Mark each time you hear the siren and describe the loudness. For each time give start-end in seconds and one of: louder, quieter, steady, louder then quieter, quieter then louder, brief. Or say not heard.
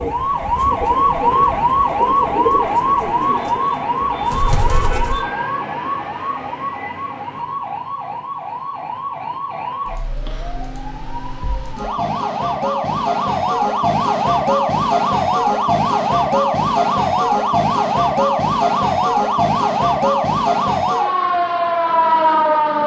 0.0-22.8 quieter then louder.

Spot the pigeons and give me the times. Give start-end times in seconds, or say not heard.
0.0-5.2.